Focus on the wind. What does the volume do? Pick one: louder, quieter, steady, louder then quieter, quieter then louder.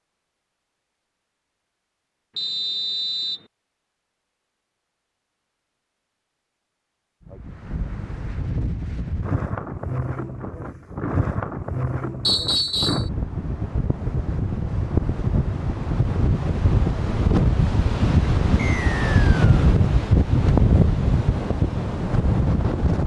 louder.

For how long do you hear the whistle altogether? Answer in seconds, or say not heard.
3 s.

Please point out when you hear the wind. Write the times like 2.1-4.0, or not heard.
7.2-23.0.